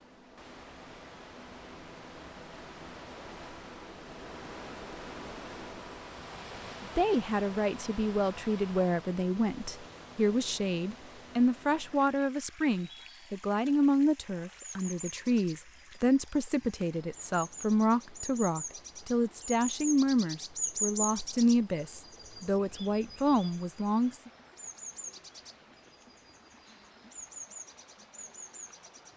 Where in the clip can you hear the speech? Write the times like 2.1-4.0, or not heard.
6.8-24.3.